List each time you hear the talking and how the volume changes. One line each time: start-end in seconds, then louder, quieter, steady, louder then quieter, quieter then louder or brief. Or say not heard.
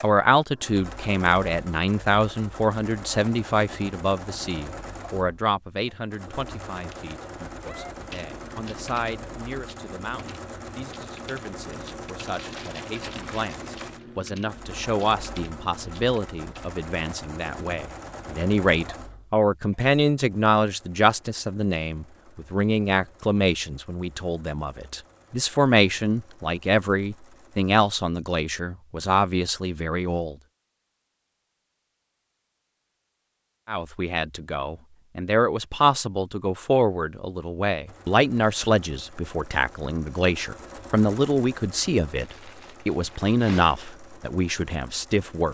0.0-30.4 quieter then louder
33.6-45.4 steady.